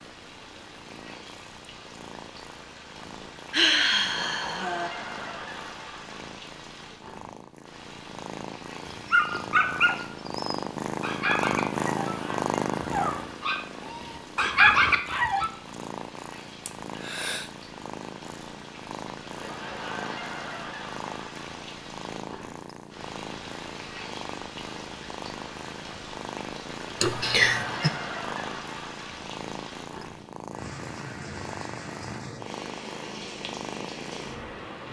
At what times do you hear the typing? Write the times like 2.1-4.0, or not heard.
not heard.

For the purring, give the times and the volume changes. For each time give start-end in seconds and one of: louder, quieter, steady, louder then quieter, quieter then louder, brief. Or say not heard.
0.0-34.8 louder then quieter.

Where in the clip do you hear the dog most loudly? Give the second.
15 s.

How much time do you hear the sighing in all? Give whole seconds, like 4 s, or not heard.
3 s.